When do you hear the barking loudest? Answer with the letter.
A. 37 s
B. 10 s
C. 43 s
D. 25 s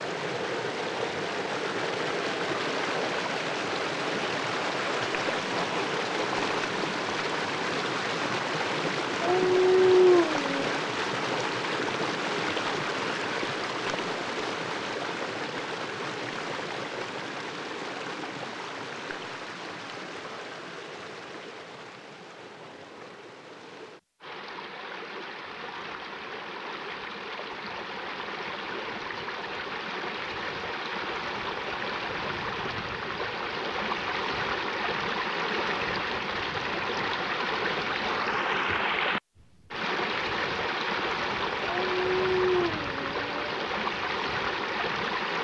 B.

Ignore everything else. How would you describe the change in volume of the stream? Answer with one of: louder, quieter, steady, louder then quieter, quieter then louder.
quieter then louder.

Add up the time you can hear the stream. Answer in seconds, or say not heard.
45 s.